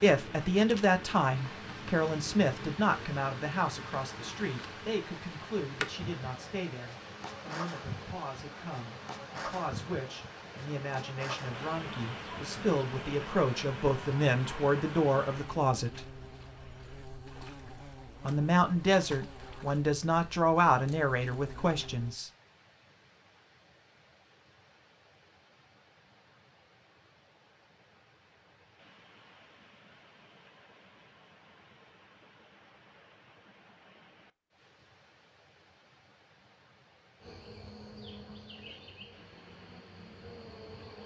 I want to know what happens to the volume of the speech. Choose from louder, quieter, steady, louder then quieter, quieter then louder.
quieter then louder.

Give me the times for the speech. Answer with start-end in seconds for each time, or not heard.
0.0-16.1, 18.2-22.3.